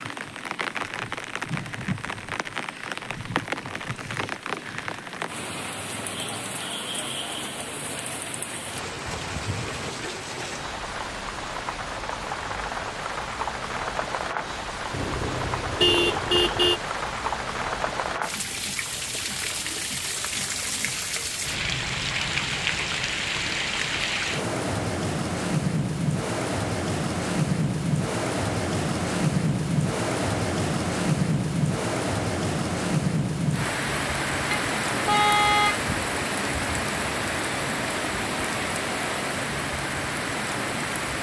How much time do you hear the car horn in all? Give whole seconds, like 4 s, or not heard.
4 s.